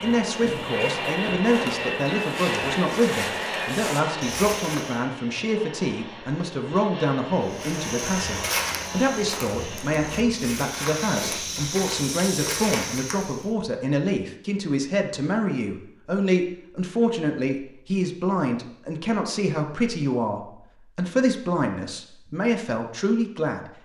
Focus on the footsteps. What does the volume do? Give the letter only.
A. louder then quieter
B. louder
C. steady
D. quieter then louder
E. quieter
B.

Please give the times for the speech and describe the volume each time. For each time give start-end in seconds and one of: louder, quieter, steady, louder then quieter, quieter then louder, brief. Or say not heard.
0.0-23.7 steady.